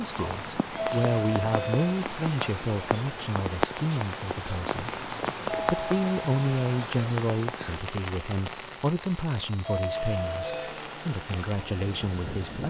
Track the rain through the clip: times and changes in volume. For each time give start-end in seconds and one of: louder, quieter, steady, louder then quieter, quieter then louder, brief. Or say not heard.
0.0-12.6 quieter.